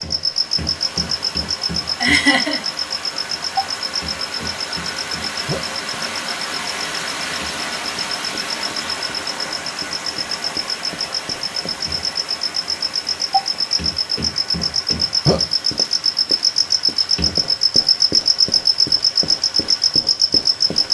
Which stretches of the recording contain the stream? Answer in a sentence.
The stream can be heard from 0.0 to 20.8 s.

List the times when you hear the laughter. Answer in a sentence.
You can hear the laughter from 2.0 to 2.6 s.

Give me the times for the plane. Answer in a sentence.
The plane can't be heard in this clip.